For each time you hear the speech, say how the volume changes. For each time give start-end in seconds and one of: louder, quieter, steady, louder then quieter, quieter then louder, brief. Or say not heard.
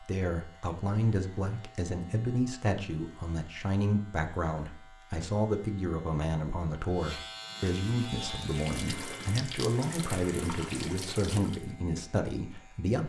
0.0-13.0 steady.